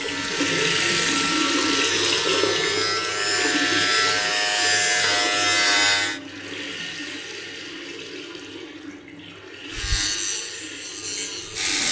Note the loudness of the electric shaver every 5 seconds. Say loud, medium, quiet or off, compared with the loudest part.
loud, loud, medium.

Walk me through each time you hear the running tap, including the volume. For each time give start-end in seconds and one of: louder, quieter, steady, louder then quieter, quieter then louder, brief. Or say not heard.
0.0-11.8 quieter.